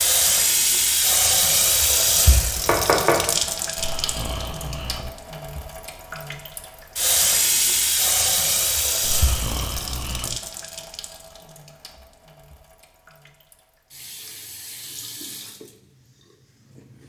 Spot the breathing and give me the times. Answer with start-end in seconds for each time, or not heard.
3.8-5.2, 9.0-10.4.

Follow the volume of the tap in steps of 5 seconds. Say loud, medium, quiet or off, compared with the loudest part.
loud, loud, quiet, quiet.